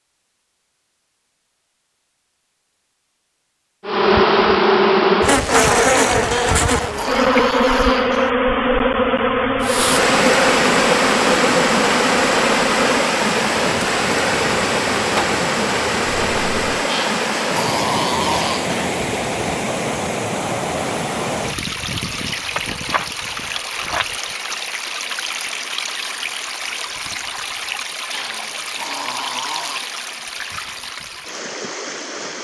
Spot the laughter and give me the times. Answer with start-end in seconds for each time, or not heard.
not heard.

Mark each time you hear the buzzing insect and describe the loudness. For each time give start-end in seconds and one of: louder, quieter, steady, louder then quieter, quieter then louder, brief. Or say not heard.
3.9-16.7 quieter.